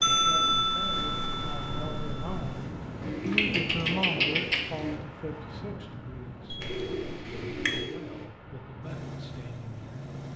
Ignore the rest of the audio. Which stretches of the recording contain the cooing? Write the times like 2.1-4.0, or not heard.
3.0-5.0, 6.6-8.2.